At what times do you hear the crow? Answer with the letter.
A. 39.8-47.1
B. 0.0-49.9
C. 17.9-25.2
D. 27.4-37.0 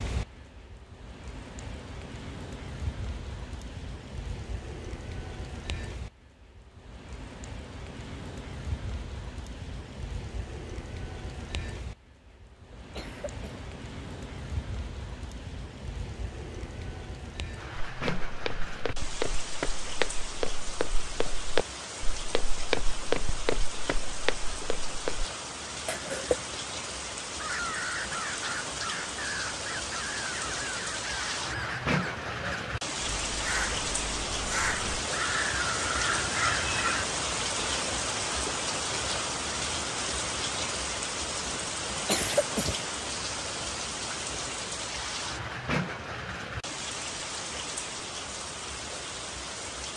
D.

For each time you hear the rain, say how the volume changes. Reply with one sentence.
The rain can be heard from 0.0 to 49.9 s, getting louder.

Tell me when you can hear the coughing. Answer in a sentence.
You can hear the coughing from 12.7 to 13.7 s, from 25.9 to 26.6 s and from 42.0 to 42.9 s.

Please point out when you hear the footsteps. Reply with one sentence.
You can hear the footsteps from 17.9 to 25.2 s.